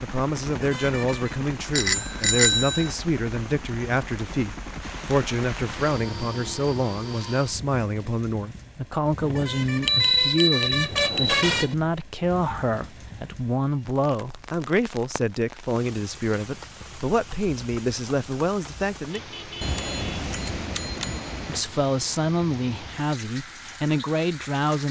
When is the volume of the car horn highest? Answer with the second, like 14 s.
11 s.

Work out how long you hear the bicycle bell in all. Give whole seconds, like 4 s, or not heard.
5 s.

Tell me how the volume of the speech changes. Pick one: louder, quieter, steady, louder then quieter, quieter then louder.
steady.